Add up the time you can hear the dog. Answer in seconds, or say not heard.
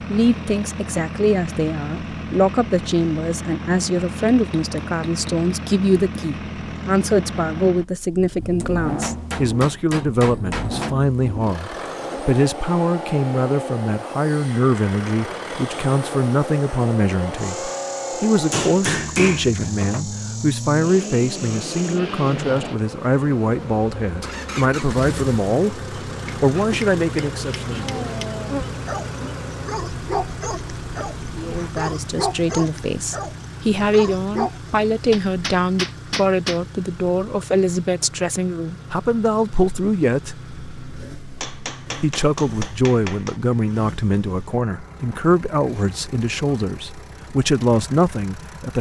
7 s.